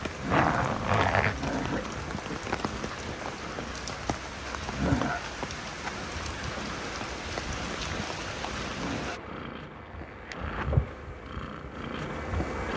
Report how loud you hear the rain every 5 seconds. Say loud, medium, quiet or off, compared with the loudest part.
loud, loud, off.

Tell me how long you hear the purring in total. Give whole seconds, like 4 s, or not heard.
13 s.